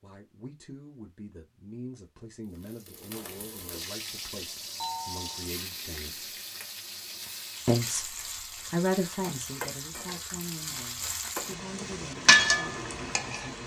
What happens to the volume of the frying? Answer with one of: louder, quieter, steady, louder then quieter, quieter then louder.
louder.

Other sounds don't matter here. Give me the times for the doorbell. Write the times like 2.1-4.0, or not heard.
4.8-5.5.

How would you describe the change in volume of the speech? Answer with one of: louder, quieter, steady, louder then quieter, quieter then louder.
louder then quieter.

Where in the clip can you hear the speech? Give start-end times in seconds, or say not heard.
0.0-6.4, 7.7-13.6.